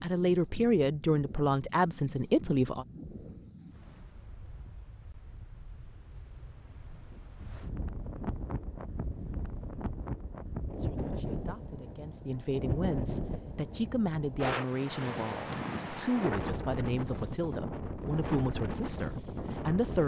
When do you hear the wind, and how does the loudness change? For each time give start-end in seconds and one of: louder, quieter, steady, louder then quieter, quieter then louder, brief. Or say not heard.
0.0-20.0 louder.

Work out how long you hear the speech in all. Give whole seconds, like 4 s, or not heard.
12 s.